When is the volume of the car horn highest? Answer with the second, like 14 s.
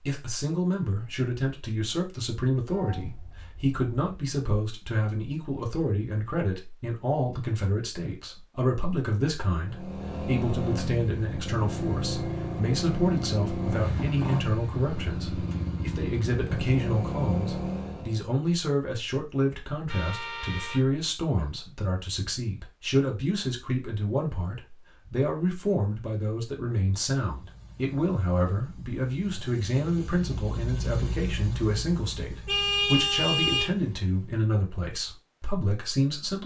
33 s.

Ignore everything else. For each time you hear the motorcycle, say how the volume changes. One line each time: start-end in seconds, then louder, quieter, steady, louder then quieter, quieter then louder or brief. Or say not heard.
9.6-18.2 steady
27.3-34.4 louder then quieter.